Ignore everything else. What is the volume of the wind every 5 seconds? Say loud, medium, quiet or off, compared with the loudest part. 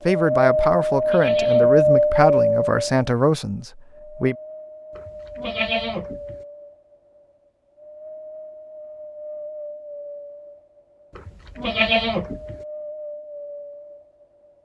loud, quiet, quiet.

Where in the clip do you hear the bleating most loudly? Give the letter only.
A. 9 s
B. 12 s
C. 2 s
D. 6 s
B.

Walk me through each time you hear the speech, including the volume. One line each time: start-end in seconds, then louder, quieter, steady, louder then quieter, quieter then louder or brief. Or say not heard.
0.1-4.3 steady.